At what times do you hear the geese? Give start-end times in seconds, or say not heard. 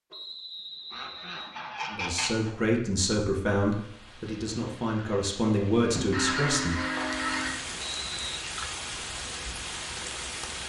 0.9-2.6, 6.0-7.7.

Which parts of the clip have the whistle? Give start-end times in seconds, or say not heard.
0.1-1.6, 7.8-8.4.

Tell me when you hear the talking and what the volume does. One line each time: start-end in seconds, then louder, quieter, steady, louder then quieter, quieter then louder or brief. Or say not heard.
1.9-6.8 quieter then louder.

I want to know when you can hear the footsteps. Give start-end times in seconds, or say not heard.
not heard.